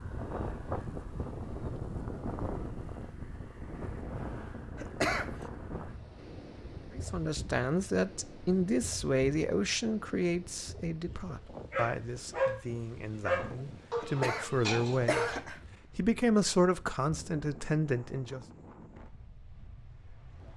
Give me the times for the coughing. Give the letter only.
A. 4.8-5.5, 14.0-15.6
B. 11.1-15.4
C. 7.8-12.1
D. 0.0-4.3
A.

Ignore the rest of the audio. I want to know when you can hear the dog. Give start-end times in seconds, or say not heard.
11.1-15.4.